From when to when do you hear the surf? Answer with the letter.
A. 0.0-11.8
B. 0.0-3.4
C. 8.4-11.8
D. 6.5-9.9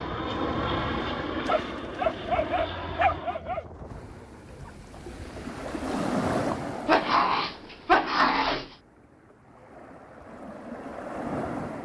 A.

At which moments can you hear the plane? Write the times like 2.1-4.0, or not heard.
0.0-3.4.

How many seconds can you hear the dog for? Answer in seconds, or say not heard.
4 s.